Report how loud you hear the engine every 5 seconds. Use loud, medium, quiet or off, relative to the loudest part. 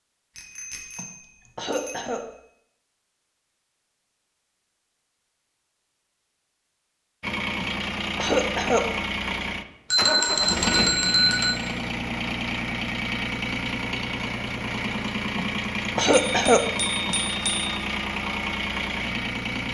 off, loud, loud, loud.